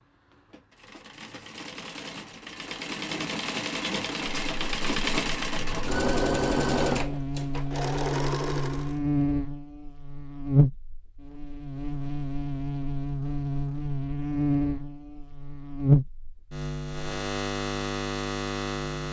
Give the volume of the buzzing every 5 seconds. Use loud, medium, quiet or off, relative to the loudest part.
off, loud, loud, loud.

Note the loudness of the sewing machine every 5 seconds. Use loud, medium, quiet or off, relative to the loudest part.
medium, loud, off, off.